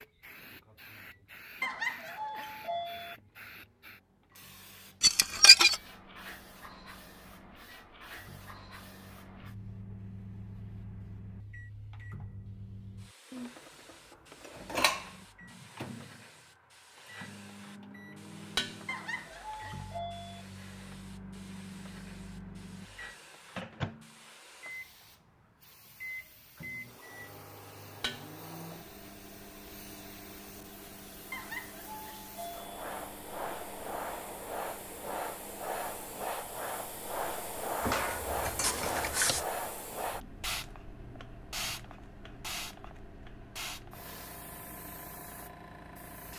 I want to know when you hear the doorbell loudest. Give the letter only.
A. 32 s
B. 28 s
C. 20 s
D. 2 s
D.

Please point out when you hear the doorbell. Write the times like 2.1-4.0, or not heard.
1.6-3.1, 18.9-20.4, 31.3-32.8.